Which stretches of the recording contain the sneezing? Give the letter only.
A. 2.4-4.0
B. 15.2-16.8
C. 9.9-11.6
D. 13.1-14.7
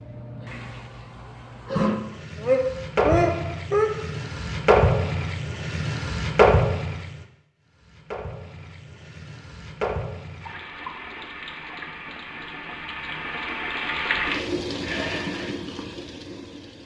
A.